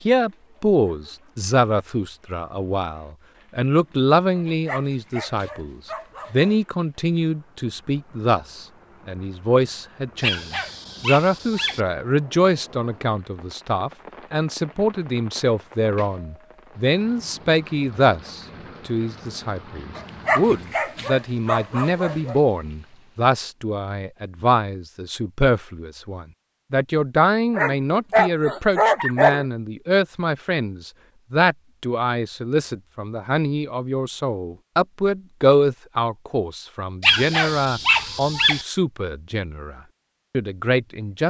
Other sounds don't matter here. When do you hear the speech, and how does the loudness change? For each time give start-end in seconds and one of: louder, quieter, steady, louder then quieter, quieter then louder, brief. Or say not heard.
0.1-41.2 steady.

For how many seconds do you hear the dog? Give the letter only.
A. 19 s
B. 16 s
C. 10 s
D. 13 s
C.